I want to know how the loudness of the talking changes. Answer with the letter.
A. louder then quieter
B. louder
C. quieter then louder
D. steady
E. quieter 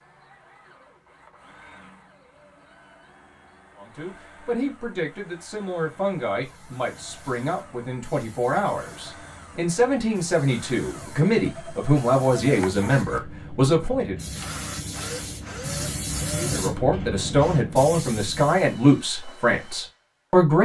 B.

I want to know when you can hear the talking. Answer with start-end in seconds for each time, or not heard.
3.8-14.2, 16.4-20.6.